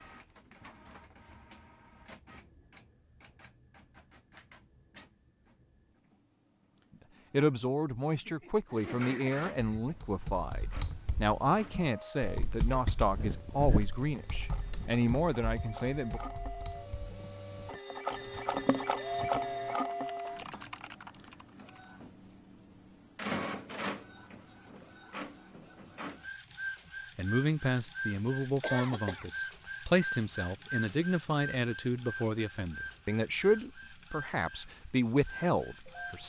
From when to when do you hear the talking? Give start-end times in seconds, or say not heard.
7.3-16.2, 27.1-36.2.